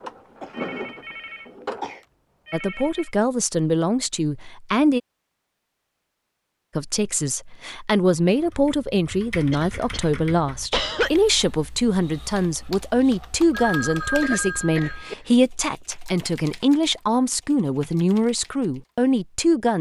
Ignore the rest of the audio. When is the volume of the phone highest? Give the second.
14 s.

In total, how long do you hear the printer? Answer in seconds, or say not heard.
2 s.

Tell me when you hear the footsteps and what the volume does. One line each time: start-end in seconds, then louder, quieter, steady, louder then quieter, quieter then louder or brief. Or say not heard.
not heard.